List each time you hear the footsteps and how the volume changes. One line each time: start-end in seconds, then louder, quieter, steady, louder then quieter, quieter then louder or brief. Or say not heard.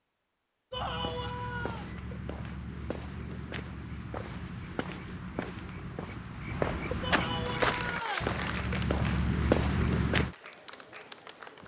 0.7-10.3 louder.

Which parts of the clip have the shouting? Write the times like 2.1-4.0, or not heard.
0.7-1.9, 7.0-8.3.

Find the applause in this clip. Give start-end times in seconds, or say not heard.
7.5-11.6.